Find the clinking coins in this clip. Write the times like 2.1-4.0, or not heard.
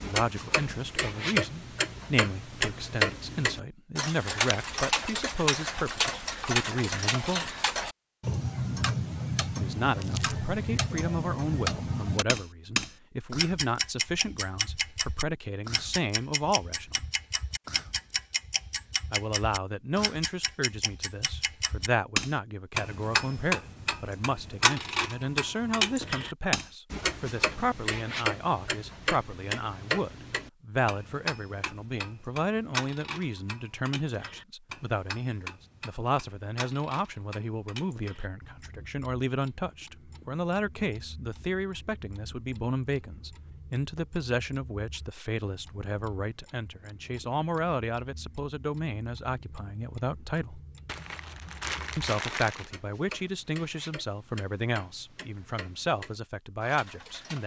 not heard.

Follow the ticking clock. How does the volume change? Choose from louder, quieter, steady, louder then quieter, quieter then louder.
quieter.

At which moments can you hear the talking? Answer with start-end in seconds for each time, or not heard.
0.0-7.5, 9.6-17.0, 19.1-50.6, 52.0-57.4.